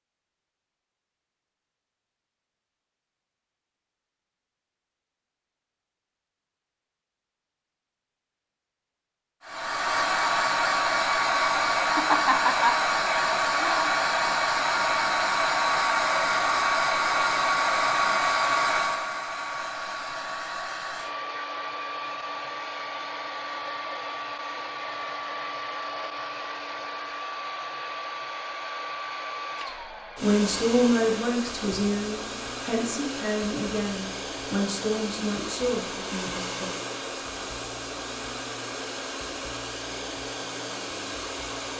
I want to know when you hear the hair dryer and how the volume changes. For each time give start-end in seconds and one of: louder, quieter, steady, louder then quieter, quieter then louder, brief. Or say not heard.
9.4-41.7 quieter.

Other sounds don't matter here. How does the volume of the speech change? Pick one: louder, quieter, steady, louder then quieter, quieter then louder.
quieter.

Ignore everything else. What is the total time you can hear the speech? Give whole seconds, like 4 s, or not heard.
7 s.